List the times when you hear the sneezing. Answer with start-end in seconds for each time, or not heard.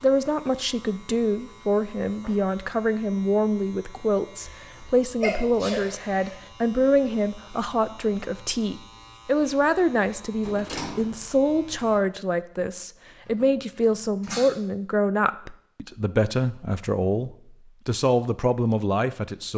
4.4-6.3, 13.2-14.5.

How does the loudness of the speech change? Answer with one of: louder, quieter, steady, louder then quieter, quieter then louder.
steady.